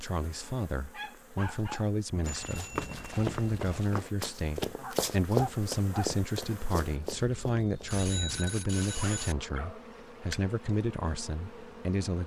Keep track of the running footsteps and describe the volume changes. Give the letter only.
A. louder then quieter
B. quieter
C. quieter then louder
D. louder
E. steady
A.